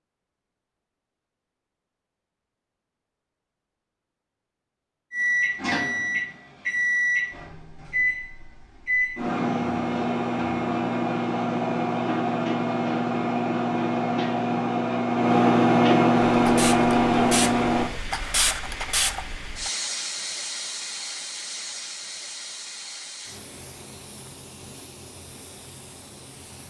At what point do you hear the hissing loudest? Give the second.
19 s.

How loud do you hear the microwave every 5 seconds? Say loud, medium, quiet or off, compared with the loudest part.
off, medium, medium, loud, off, off.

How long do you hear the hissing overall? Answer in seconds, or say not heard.
10 s.